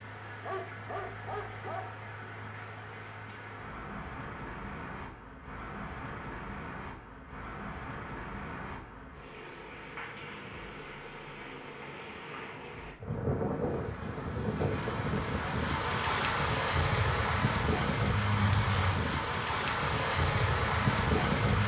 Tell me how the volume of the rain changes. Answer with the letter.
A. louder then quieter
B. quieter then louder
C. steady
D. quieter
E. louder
E.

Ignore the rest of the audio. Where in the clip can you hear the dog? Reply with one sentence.
You can hear the dog from 0.4 to 1.9 s.